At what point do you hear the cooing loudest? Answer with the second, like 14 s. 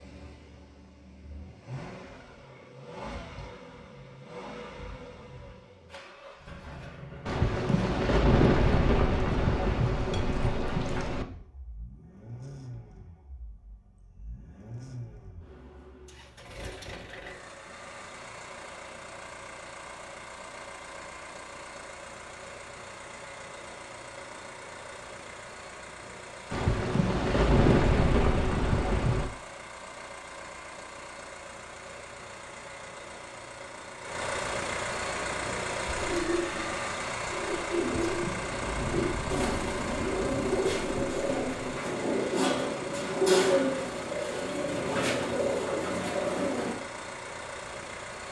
43 s.